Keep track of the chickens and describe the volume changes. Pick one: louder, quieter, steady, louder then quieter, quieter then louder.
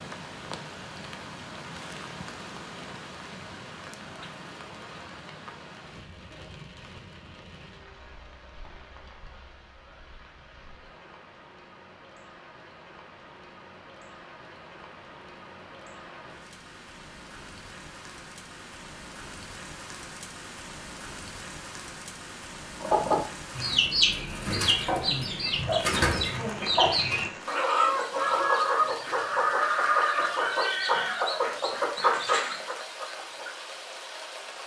steady.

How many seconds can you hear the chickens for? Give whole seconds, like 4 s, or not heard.
11 s.